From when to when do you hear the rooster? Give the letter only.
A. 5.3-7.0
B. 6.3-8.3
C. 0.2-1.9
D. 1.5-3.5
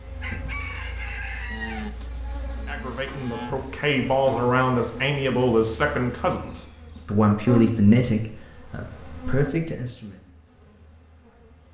C.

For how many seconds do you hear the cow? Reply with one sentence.
The cow can be heard for 2 seconds in total.